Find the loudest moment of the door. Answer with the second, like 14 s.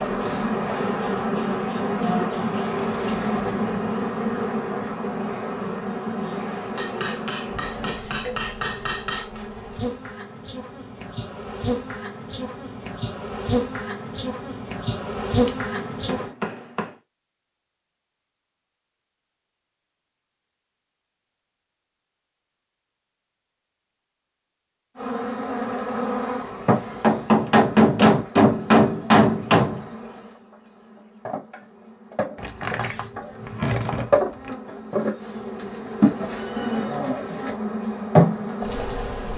34 s.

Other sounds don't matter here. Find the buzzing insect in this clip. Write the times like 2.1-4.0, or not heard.
0.0-16.3, 24.9-39.3.